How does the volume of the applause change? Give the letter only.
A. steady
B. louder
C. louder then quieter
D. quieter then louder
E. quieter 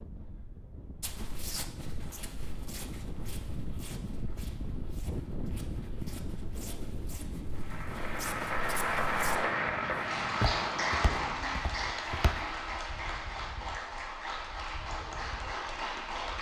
E.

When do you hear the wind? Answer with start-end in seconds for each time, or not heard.
0.0-16.3.